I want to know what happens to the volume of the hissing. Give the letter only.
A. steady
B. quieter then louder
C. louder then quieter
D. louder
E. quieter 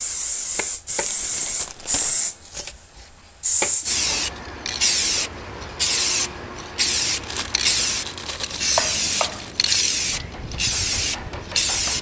A.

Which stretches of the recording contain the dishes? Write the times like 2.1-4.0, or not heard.
not heard.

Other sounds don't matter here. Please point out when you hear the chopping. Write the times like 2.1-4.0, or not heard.
0.0-1.2, 2.0-4.0, 8.6-11.9.